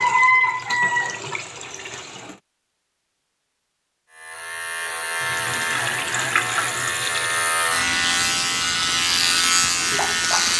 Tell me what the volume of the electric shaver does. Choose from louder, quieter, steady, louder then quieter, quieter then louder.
louder.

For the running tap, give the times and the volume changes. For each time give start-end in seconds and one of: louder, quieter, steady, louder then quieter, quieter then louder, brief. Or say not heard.
0.0-2.4 brief
5.2-10.5 quieter then louder.